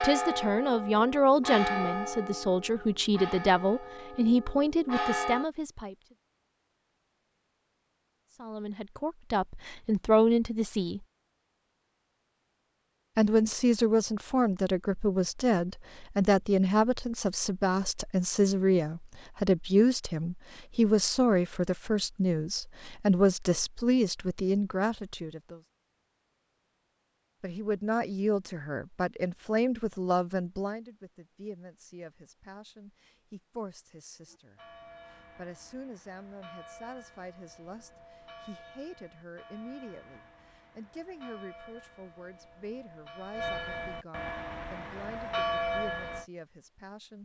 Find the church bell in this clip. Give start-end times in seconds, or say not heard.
0.0-5.5, 34.2-46.2.